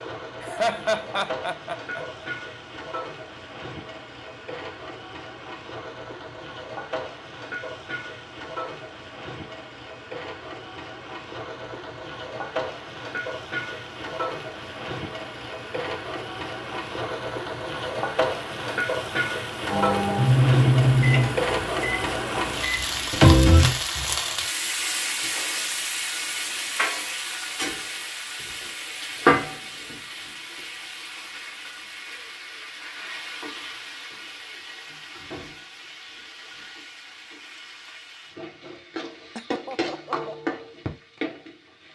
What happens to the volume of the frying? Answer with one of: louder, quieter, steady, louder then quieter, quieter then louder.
louder then quieter.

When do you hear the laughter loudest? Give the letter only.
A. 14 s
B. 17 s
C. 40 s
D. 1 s
D.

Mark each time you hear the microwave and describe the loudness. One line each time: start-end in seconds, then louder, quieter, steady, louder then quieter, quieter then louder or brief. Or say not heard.
19.7-23.8 quieter then louder.